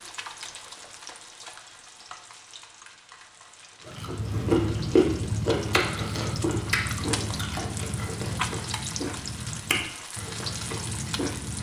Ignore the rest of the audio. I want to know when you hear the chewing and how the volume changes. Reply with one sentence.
The chewing can be heard from 3.9 to 11.5 s, getting quieter.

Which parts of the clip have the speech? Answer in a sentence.
You can't hear the speech here.